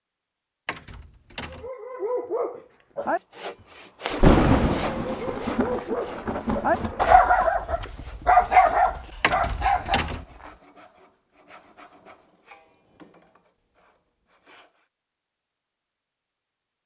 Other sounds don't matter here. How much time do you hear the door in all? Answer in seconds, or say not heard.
2 s.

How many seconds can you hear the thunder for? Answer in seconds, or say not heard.
3 s.